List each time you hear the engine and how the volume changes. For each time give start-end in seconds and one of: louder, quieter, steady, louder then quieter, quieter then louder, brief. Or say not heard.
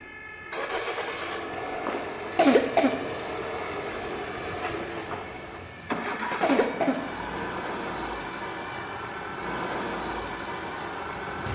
0.0-11.4 steady.